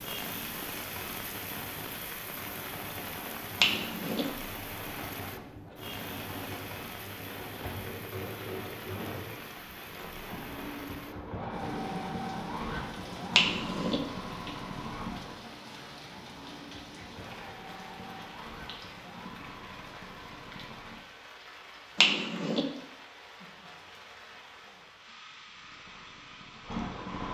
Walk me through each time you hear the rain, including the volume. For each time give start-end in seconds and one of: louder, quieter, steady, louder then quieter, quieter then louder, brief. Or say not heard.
0.0-27.2 quieter.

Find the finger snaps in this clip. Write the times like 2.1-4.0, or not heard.
3.6-4.2, 13.3-14.0, 21.9-22.6.